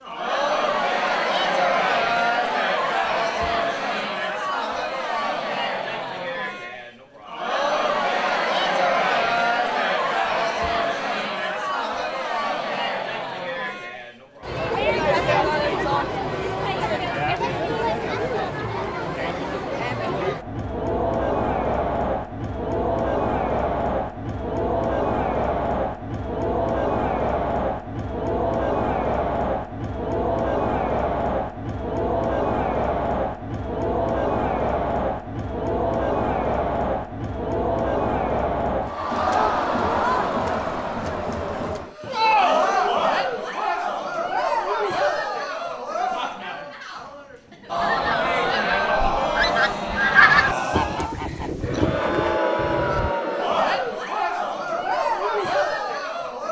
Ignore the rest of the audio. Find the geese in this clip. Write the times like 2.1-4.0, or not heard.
47.8-53.1.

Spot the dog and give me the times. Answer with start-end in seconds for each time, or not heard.
not heard.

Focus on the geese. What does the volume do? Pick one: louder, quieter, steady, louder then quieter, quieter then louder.
louder then quieter.